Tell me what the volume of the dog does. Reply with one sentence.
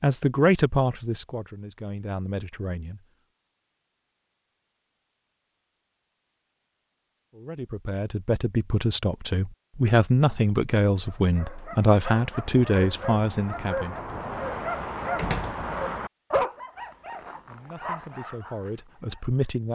The volume of the dog goes up, then down.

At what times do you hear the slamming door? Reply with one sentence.
You can hear the slamming door from 15.2 to 15.7 s.